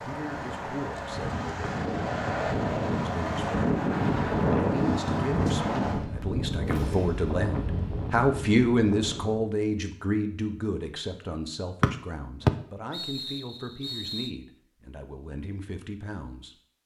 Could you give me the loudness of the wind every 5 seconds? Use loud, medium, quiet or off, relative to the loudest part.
loud, loud, off, off.